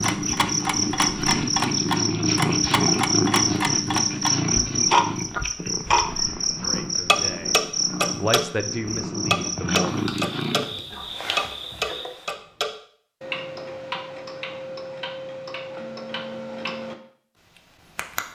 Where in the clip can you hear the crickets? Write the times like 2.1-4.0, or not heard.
0.0-12.4.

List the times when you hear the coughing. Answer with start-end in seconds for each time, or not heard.
not heard.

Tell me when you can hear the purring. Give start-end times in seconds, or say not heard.
0.0-10.8.